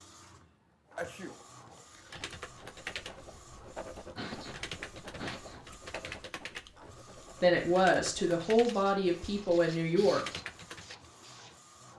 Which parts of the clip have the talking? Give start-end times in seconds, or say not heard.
7.4-10.2.